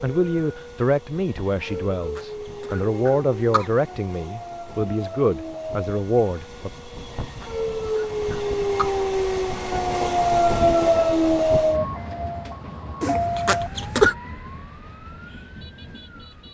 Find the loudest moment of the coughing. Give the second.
14 s.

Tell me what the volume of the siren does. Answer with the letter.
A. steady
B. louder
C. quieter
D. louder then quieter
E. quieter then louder
D.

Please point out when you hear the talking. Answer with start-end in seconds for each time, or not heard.
0.0-6.7.